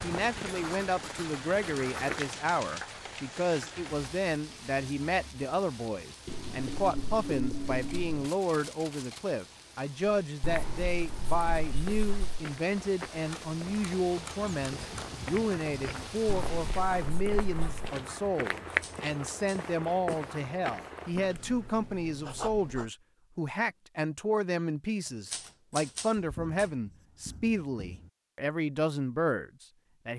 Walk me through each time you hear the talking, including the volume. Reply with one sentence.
The talking can be heard from 0.0 to 30.1 s, at a steady volume.